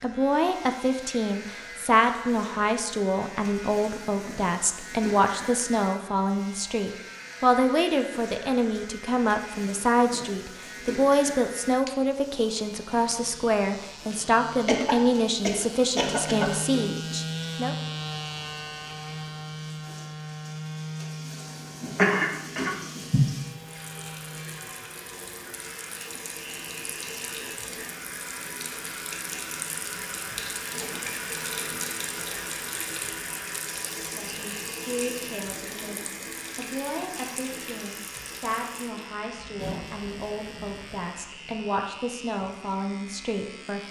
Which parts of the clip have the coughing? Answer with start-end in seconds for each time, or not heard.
14.7-16.6, 21.9-23.2.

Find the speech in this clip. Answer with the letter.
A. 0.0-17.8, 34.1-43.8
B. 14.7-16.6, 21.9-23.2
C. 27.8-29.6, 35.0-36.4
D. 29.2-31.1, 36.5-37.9
A.